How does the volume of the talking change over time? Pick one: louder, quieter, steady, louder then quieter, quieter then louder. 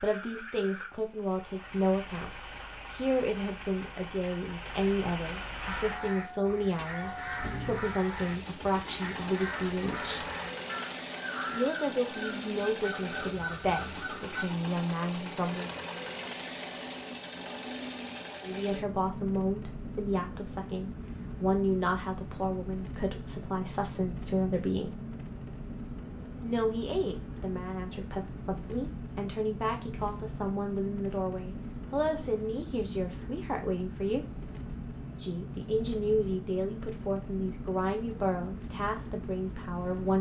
steady.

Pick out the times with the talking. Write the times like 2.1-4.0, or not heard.
0.0-10.2, 11.5-15.7, 18.4-24.9, 26.4-34.5, 35.1-40.1.